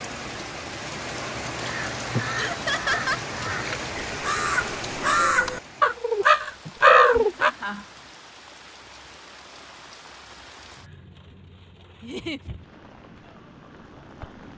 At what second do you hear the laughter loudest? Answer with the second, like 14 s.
3 s.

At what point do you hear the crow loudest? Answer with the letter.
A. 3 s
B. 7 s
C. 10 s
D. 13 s
B.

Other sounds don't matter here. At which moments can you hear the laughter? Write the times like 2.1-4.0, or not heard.
2.4-3.2, 6.7-7.8, 12.0-12.4.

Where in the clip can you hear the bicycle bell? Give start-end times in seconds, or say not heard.
not heard.